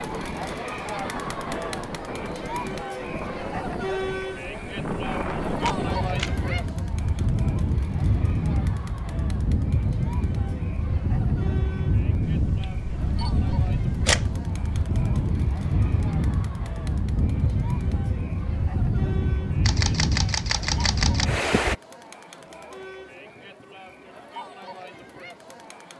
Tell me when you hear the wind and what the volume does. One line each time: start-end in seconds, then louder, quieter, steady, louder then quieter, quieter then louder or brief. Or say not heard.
0.0-21.8 louder.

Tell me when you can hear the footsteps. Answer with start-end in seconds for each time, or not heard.
not heard.